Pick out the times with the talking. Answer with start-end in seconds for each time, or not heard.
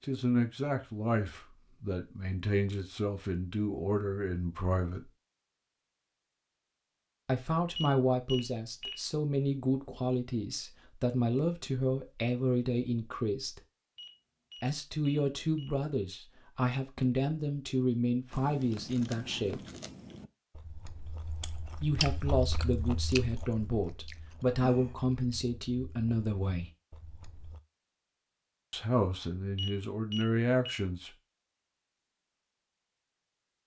0.0-5.1, 7.2-13.6, 14.6-19.6, 21.8-26.7, 28.7-31.1.